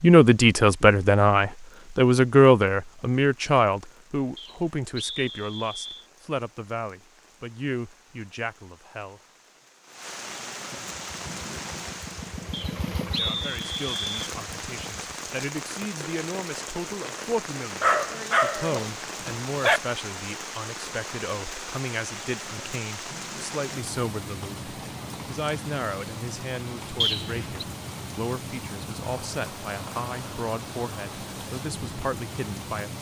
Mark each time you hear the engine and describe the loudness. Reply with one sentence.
The engine can be heard from 10.9 to 15.2 s, getting louder then quieter.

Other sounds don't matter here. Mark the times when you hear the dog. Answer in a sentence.
You can hear the dog from 17.8 to 19.8 s.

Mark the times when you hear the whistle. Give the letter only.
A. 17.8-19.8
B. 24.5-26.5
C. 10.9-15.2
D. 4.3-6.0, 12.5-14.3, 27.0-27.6
D.